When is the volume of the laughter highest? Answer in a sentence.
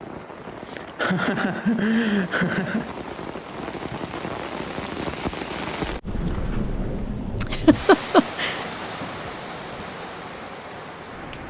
The volume of the laughter peaks at 8 seconds.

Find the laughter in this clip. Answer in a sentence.
The laughter can be heard from 0.5 to 2.9 s and from 7.4 to 8.6 s.